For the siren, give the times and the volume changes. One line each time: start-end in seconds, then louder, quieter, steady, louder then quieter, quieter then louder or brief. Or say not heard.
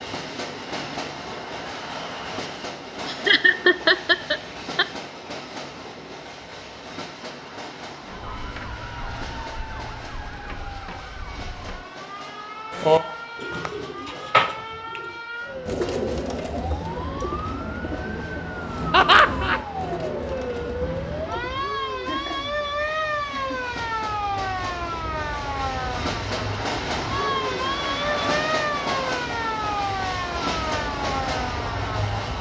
8.0-32.3 louder.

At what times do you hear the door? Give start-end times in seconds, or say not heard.
not heard.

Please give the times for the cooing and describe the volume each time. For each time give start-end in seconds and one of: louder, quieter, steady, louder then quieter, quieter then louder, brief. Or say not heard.
12.7-21.6 quieter.